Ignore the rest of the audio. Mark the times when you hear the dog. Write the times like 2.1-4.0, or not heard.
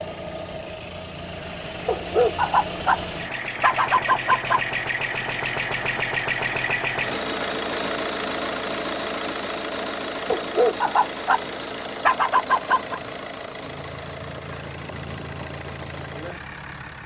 1.9-4.6, 10.2-13.0.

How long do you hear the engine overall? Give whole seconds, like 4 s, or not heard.
17 s.